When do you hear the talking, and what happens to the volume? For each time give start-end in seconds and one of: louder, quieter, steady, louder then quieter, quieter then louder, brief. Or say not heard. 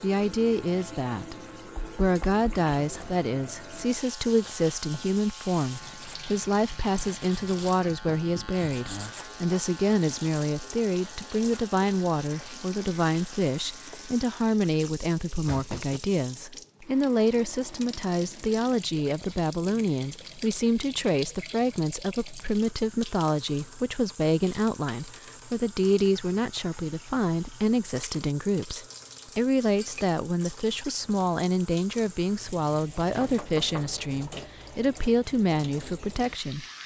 0.0-36.6 steady.